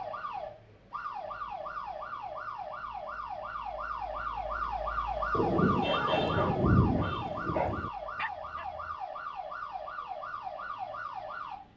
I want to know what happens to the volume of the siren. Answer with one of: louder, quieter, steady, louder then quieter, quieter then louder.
louder then quieter.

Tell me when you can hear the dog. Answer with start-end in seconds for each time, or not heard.
5.8-9.0.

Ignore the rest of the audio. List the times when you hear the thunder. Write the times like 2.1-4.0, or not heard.
5.3-7.9.